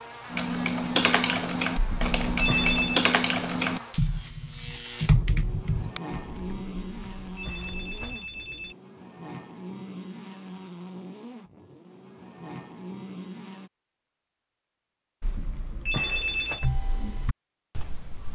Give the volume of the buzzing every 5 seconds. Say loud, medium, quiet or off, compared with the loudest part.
loud, loud, loud, off.